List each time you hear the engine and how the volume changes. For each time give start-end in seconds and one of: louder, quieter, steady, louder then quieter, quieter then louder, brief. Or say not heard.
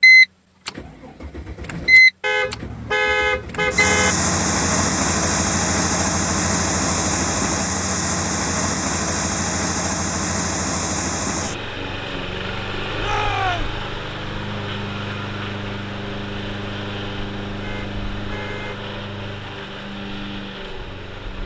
0.0-21.4 quieter.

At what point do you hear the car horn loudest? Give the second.
3 s.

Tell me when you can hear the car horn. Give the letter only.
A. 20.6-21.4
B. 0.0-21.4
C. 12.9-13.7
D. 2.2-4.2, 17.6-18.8
D.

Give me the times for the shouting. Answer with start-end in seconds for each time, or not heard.
12.9-13.7.